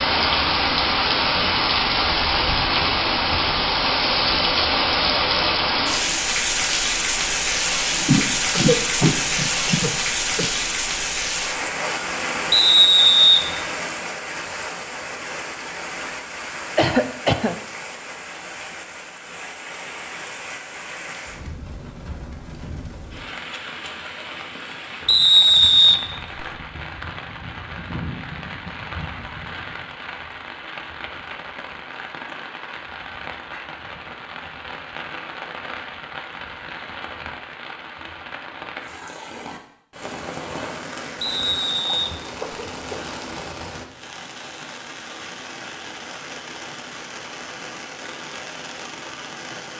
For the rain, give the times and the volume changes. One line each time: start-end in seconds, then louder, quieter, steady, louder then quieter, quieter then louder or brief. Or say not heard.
0.0-49.7 quieter.